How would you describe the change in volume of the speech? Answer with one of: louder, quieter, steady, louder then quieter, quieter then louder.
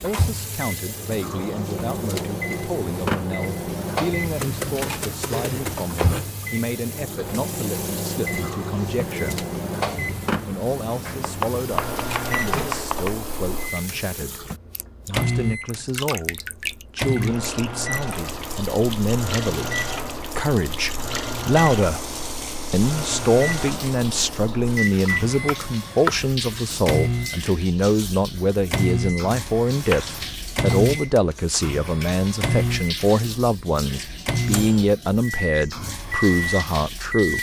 louder.